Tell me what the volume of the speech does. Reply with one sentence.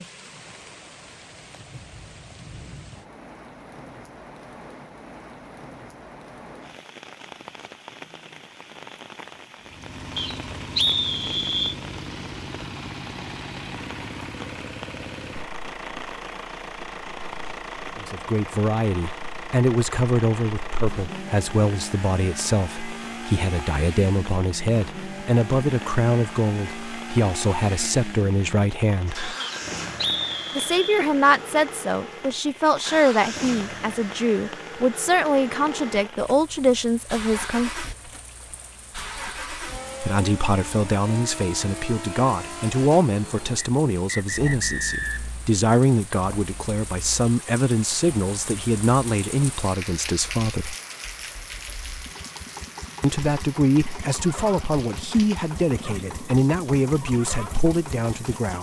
The loudness of the speech stays about the same.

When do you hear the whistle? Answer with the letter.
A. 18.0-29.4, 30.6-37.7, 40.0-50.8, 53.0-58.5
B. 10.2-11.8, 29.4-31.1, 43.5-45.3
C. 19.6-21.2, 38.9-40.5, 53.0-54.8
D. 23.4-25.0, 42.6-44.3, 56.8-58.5
B.